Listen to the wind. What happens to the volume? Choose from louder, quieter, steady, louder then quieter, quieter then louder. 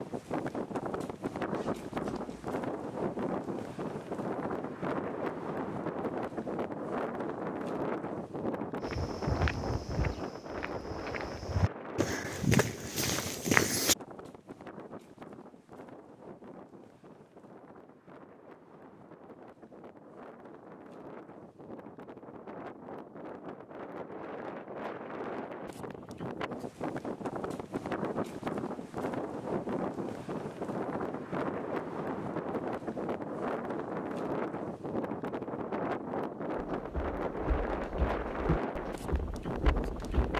quieter then louder.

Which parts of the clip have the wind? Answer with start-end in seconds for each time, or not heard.
0.0-40.3.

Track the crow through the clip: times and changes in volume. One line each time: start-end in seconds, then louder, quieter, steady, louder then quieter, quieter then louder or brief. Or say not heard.
not heard.